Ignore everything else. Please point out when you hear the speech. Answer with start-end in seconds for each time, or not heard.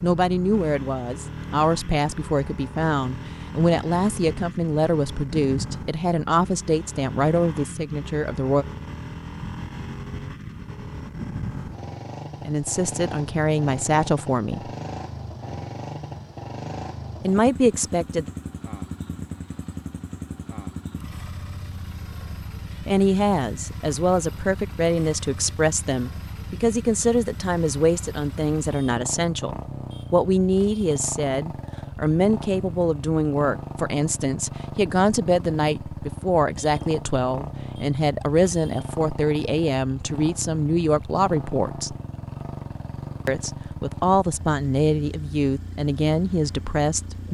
0.0-8.7, 12.4-14.7, 17.2-18.2, 22.9-42.0, 43.2-47.2.